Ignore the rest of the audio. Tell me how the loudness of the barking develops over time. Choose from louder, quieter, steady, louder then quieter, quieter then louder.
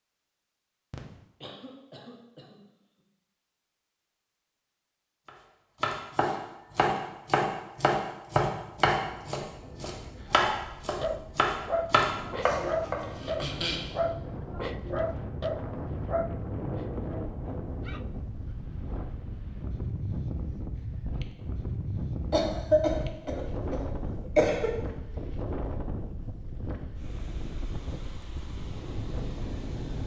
quieter.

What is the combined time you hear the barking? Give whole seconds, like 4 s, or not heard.
8 s.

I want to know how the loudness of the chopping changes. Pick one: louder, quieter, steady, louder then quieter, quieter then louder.
steady.